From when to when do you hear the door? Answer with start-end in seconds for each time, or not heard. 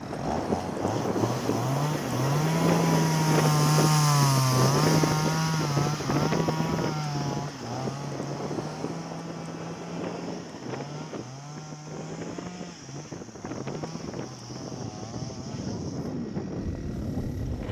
not heard.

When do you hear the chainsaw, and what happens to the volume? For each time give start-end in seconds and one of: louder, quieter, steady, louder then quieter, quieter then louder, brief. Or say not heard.
0.0-17.6 quieter.